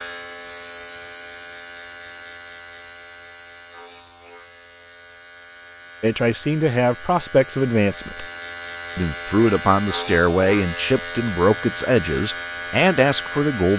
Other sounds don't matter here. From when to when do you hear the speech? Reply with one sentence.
The speech can be heard from 6.0 to 8.2 s and from 8.9 to 13.7 s.